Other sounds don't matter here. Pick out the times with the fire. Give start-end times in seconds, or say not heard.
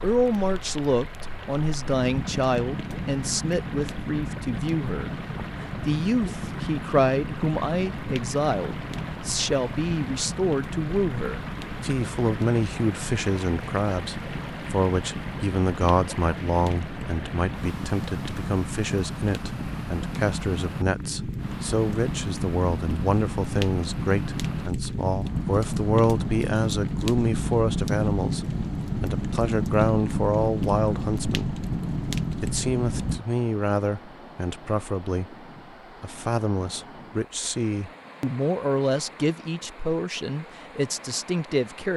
0.0-33.2.